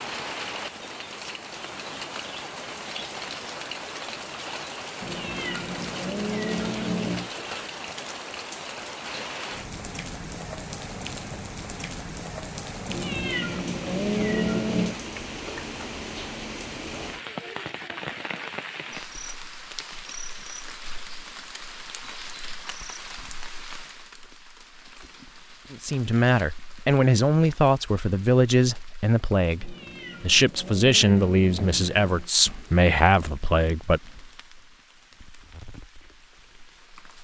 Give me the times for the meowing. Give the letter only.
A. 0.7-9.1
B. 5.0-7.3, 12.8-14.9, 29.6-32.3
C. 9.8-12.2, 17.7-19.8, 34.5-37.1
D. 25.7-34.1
B.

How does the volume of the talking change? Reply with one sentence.
The loudness of the talking stays about the same.